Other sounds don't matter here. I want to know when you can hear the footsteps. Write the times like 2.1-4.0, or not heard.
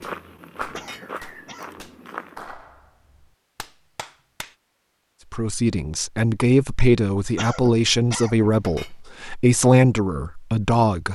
0.0-2.5.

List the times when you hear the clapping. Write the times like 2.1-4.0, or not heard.
0.0-4.5.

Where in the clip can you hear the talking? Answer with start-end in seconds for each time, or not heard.
5.3-11.0.